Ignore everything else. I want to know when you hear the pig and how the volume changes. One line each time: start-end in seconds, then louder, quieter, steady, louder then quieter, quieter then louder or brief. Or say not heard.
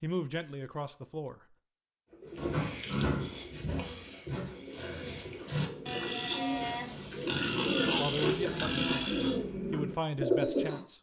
2.2-9.4 quieter then louder.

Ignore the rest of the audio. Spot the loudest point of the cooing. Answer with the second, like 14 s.
10 s.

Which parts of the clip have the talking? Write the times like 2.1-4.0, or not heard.
0.0-1.6, 8.0-10.9.